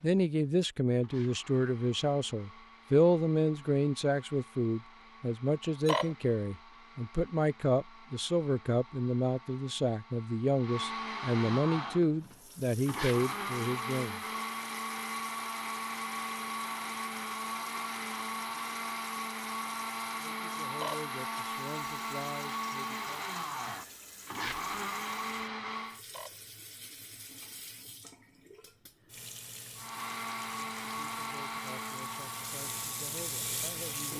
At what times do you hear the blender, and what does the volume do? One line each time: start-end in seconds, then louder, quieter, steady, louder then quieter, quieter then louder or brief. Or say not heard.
0.0-26.0 louder
29.8-34.1 quieter.